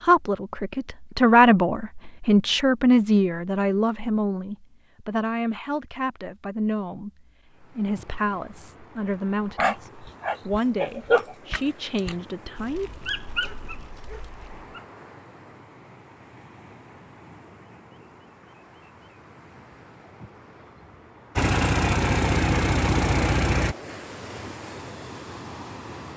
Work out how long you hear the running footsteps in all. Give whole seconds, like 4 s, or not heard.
not heard.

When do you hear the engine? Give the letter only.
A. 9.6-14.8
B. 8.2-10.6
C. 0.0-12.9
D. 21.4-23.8
D.